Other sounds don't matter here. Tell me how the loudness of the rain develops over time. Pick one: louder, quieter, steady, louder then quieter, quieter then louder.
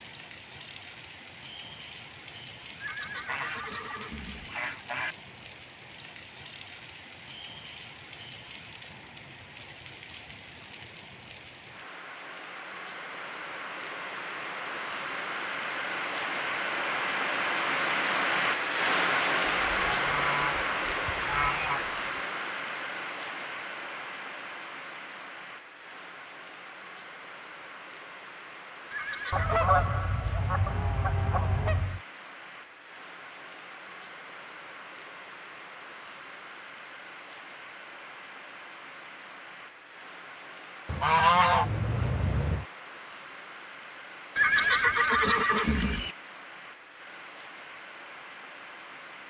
louder then quieter.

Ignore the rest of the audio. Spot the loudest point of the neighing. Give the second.
45 s.